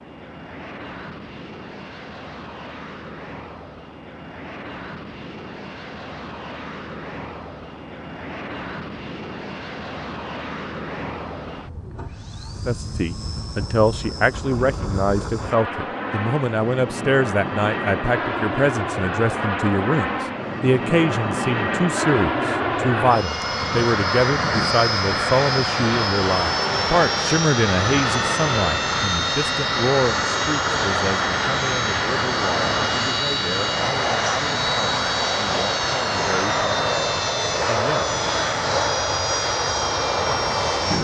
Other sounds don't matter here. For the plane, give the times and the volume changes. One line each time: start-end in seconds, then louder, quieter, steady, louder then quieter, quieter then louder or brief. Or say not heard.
0.0-40.9 louder.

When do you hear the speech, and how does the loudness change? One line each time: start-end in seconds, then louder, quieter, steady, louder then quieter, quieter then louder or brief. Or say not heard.
12.7-38.1 quieter.